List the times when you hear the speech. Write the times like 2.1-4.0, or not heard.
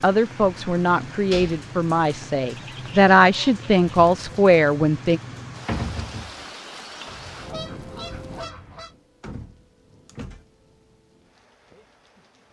0.0-5.2.